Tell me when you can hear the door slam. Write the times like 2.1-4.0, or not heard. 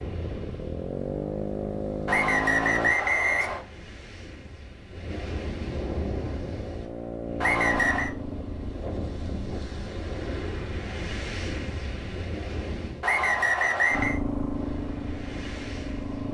not heard.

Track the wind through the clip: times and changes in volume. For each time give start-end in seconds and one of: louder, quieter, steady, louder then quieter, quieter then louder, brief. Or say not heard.
0.0-16.2 louder then quieter.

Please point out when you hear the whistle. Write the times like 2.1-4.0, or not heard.
2.0-3.6, 7.4-8.1, 13.0-14.2.